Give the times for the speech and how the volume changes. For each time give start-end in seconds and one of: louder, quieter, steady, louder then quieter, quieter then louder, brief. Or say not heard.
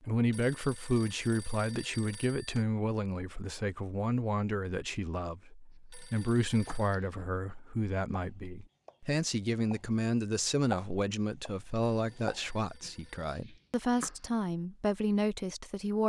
0.0-16.0 steady.